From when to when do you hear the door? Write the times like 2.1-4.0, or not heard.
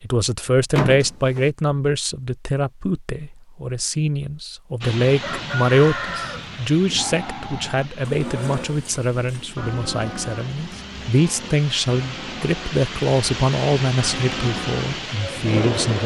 0.8-1.5.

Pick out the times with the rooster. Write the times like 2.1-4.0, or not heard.
5.2-6.5.